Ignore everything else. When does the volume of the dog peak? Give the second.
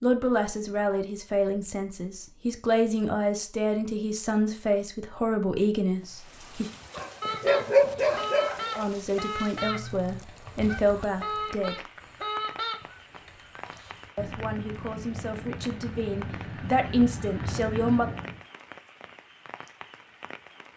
8 s.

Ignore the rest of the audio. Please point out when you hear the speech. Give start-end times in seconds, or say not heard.
0.0-6.7, 8.8-11.8, 14.2-18.1.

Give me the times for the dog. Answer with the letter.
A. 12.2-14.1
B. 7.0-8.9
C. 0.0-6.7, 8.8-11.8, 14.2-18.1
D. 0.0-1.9
B.